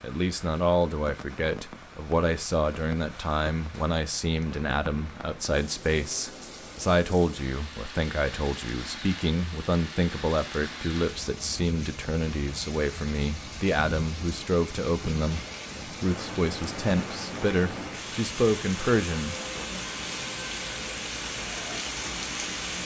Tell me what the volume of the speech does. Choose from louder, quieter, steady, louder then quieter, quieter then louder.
steady.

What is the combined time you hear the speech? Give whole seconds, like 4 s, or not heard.
20 s.